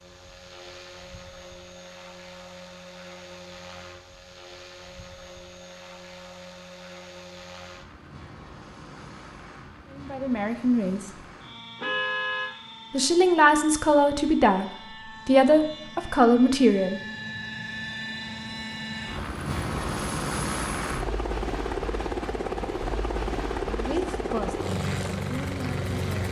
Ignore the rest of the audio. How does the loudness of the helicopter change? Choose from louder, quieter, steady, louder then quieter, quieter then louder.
louder.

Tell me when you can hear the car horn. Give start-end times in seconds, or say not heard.
11.8-12.5.